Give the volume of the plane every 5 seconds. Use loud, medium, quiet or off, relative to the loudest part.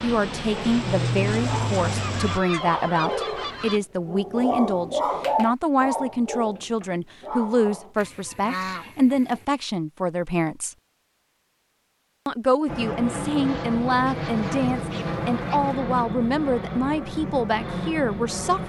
loud, off, loud, loud.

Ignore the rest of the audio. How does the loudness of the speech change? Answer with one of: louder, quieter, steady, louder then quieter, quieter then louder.
steady.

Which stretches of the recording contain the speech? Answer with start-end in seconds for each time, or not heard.
0.0-10.8, 12.2-18.6.